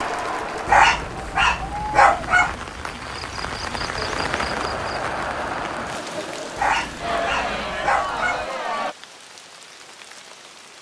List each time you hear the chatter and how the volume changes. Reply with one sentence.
You can hear the chatter from 0.0 to 8.9 s, getting quieter then louder.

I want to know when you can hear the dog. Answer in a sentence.
You can hear the dog from 0.7 to 2.5 s and from 6.5 to 8.4 s.